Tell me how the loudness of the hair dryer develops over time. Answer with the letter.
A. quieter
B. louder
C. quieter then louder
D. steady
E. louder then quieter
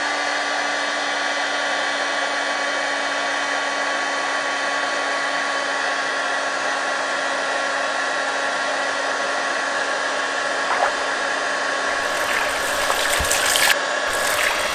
D.